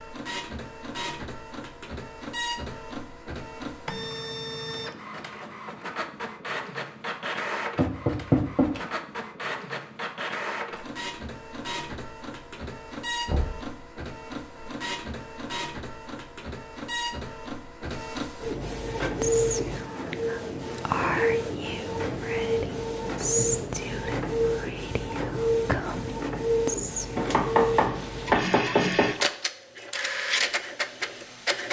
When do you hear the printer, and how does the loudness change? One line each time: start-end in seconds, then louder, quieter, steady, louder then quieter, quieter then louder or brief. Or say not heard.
0.0-31.6 louder.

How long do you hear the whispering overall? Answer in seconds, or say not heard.
8 s.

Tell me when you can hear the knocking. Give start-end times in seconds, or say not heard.
7.8-8.8, 13.2-13.7, 27.1-29.2.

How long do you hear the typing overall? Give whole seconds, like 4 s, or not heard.
not heard.